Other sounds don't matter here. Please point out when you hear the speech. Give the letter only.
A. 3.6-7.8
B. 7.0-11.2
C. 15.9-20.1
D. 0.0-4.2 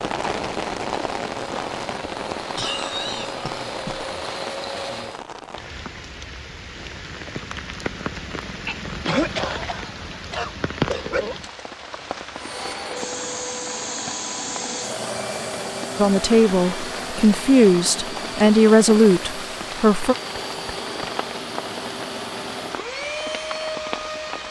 C.